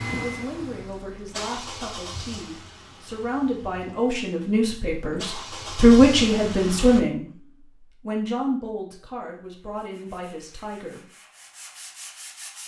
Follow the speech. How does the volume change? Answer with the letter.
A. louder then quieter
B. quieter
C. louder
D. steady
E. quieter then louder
A.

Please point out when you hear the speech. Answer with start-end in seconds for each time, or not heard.
0.1-11.0.